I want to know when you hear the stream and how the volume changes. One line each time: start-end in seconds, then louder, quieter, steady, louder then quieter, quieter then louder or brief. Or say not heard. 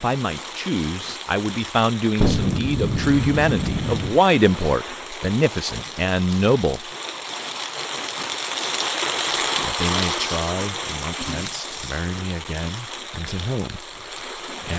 0.0-14.7 louder then quieter.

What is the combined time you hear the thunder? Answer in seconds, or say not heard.
2 s.